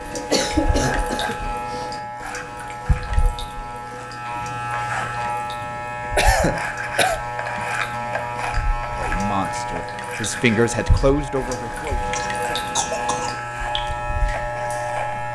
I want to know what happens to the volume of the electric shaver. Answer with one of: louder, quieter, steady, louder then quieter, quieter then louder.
steady.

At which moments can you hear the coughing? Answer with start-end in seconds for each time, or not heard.
0.1-1.9, 6.2-7.2, 12.2-13.3.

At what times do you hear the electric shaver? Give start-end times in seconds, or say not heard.
0.0-15.2.